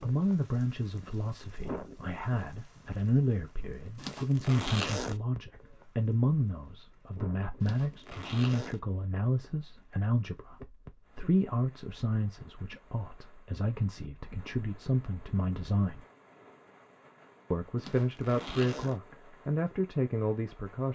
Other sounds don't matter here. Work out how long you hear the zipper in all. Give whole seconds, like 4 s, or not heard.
4 s.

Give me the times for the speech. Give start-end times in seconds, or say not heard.
0.0-16.0, 17.5-20.8.